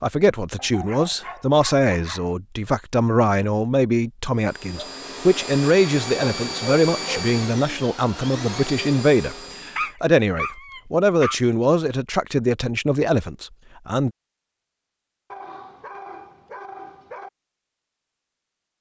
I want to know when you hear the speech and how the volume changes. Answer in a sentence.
You can hear the speech from 0.0 to 14.1 s, at a steady volume.